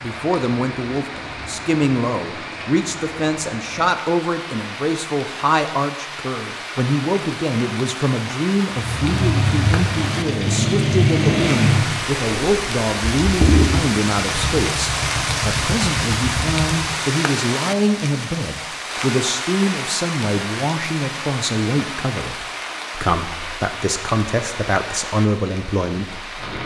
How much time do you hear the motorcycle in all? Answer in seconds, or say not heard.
8 s.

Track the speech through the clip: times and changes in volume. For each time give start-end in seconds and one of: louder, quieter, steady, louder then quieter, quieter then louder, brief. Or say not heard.
0.0-26.4 steady.